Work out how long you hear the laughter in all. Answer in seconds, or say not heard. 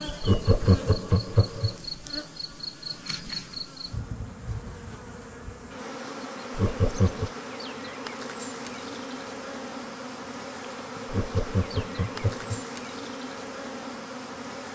4 s.